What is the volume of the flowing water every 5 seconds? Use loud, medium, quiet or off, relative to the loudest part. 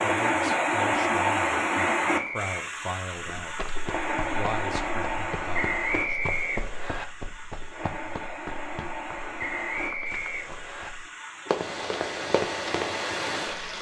loud, medium, medium.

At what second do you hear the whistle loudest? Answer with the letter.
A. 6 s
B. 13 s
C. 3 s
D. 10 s
A.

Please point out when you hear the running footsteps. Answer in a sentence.
You can hear the running footsteps from 3.4 to 12.9 s.